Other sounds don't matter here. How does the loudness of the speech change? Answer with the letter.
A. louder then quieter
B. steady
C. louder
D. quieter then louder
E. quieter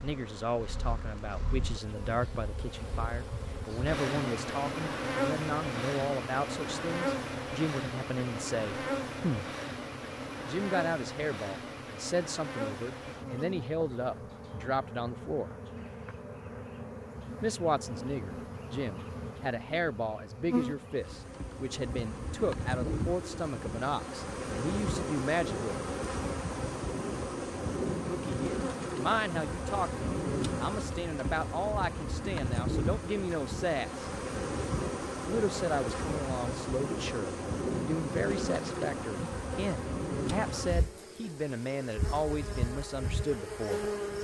B.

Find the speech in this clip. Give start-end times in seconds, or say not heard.
0.0-9.5, 10.4-15.5, 17.4-25.9, 28.2-34.0, 35.2-43.9.